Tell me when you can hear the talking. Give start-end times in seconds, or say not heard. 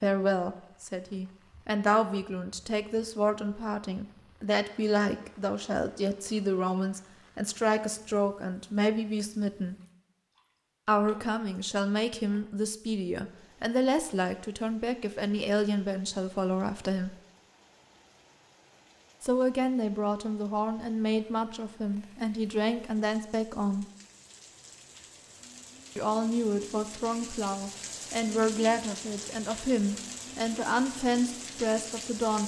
0.0-9.8, 10.8-17.1, 19.2-23.9, 25.9-32.4.